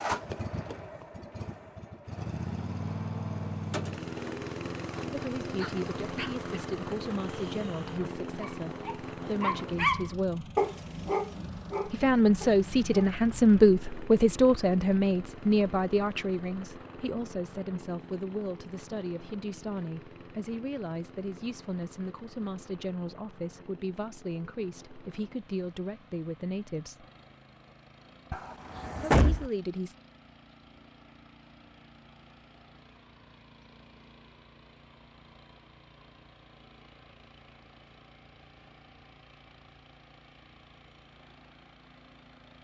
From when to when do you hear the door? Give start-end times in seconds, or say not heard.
28.3-29.5.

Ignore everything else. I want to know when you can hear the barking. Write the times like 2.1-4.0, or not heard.
5.5-13.2.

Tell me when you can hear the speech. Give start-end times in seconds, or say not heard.
5.1-10.5, 11.8-27.1, 29.1-29.9.